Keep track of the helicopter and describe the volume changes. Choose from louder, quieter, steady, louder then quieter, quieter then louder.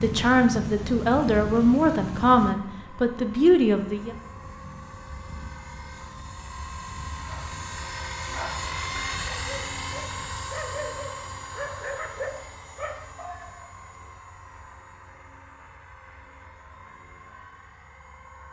louder then quieter.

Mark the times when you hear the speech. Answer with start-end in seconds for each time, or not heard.
0.0-4.1.